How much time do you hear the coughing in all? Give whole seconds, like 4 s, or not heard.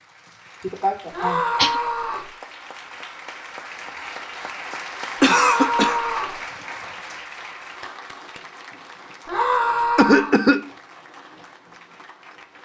3 s.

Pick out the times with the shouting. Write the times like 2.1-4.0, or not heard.
1.1-2.3, 5.2-6.3, 9.2-10.3.